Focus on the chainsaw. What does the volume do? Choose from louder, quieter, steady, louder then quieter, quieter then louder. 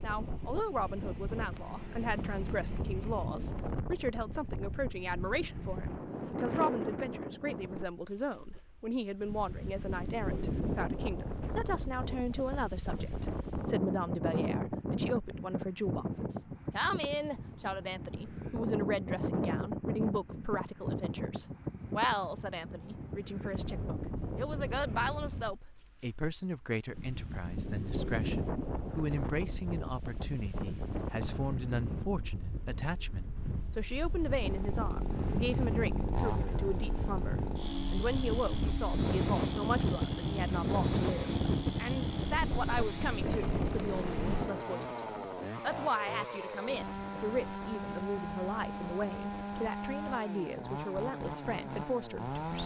steady.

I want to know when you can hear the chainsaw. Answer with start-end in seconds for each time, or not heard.
34.4-52.6.